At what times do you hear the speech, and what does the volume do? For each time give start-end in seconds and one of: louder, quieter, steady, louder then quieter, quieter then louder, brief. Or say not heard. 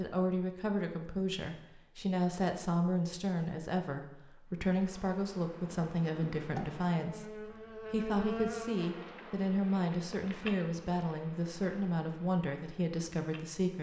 0.0-13.7 steady.